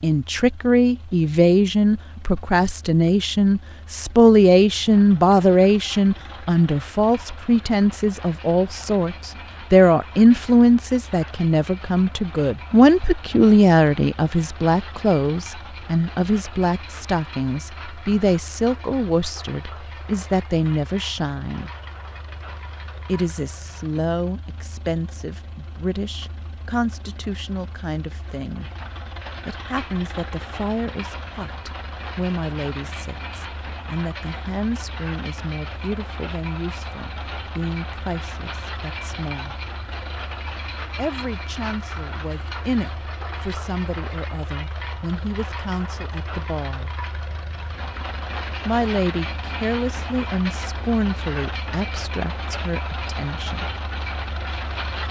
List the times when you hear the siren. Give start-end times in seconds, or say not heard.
not heard.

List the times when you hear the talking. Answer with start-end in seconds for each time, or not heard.
0.0-21.7, 23.1-28.7, 29.4-39.5, 41.0-46.9, 48.6-53.6.